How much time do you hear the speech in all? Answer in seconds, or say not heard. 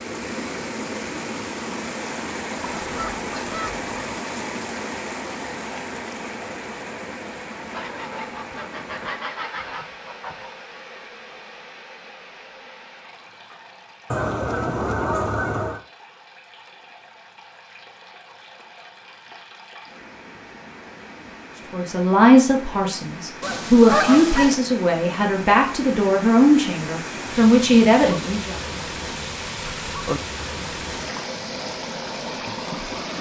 7 s.